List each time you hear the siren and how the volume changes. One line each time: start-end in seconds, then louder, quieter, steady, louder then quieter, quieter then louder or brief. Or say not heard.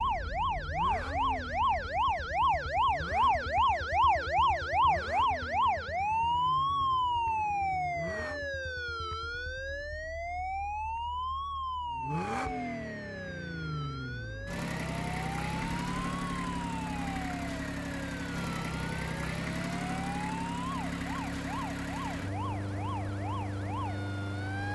0.0-24.7 quieter.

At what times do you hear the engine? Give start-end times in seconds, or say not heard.
0.0-8.5, 11.8-24.7.